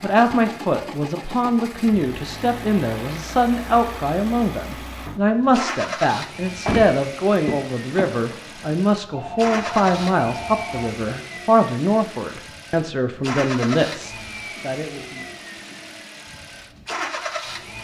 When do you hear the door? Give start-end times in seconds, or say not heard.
6.7-8.8.